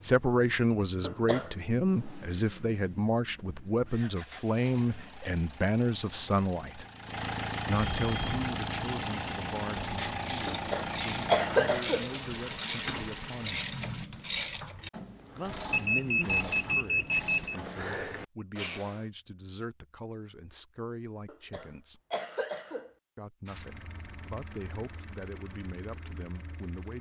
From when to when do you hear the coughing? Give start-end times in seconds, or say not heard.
1.0-1.5, 10.4-12.1, 21.2-22.9.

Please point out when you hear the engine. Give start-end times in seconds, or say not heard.
0.0-14.1, 23.4-26.9.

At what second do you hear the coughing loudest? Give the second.
11 s.